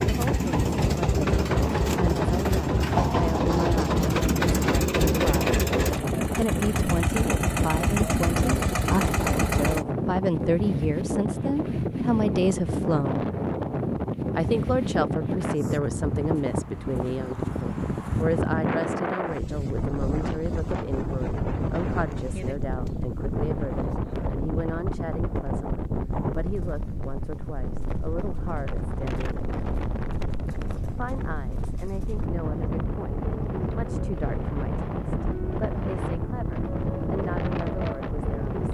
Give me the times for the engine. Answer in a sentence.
The engine can be heard from 0.0 to 9.8 s.